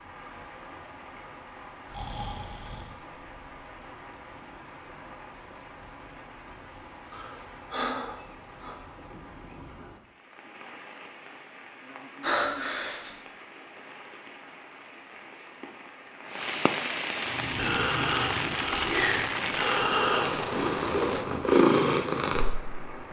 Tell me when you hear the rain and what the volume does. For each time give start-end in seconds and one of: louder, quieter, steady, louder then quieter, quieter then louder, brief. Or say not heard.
0.0-23.0 louder.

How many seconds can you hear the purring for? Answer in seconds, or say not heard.
6 s.